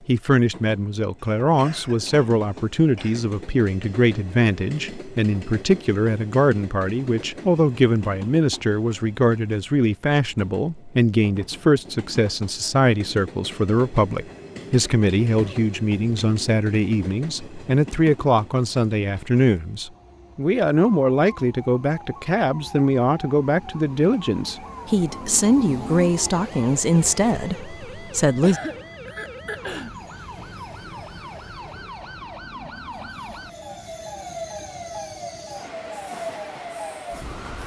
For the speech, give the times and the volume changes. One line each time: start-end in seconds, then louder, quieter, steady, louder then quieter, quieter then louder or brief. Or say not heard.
0.1-28.6 steady.